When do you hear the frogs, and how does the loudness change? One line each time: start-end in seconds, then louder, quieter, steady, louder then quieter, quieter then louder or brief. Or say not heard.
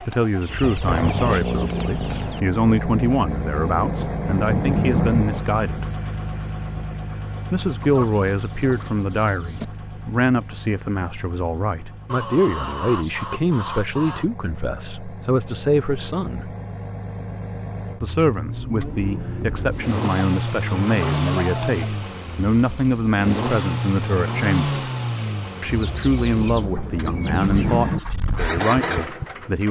not heard.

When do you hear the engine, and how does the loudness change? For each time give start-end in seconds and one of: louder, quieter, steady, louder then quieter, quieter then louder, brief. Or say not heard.
0.0-29.6 quieter then louder.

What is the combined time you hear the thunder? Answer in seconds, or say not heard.
3 s.